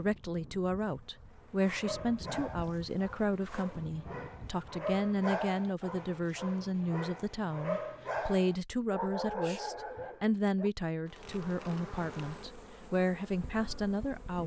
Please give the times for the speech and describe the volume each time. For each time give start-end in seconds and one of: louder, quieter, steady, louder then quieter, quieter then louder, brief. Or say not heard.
0.0-14.4 steady.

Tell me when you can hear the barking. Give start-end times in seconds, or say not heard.
1.6-10.7.